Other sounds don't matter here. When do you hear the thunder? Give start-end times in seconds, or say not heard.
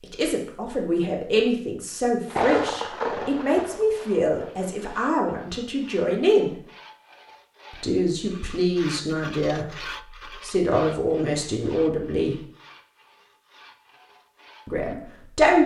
2.2-4.7.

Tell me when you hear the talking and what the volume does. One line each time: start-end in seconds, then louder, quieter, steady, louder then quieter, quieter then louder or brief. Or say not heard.
0.0-6.5 steady
7.7-9.7 brief
10.4-12.3 brief
14.7-15.6 brief.